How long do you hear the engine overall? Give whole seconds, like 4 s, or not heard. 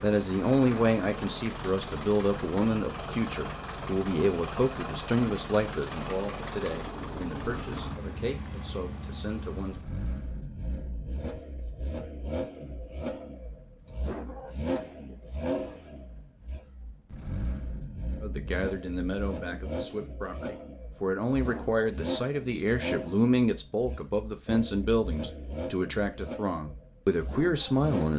28 s.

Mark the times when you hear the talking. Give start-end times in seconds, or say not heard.
0.0-9.8, 18.2-28.1.